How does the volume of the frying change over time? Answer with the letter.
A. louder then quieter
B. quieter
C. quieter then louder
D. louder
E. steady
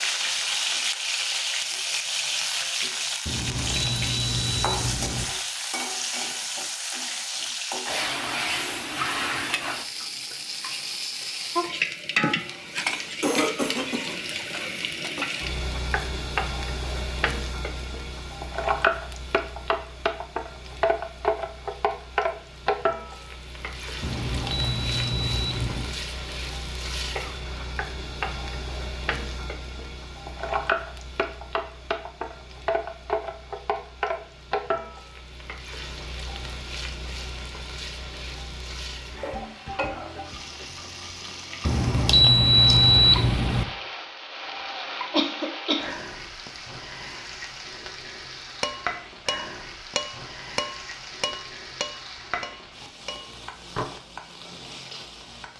B.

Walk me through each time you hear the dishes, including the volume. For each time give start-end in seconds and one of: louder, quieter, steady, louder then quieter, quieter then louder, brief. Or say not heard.
48.6-54.0 quieter.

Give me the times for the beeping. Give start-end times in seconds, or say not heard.
3.2-5.2, 24.0-25.9, 41.6-43.6.